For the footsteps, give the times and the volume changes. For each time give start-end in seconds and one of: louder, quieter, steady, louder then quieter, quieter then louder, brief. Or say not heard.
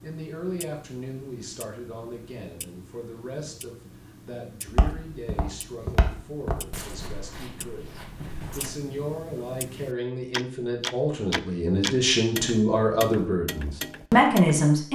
4.7-8.8 louder then quieter.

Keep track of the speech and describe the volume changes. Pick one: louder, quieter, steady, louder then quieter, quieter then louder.
louder.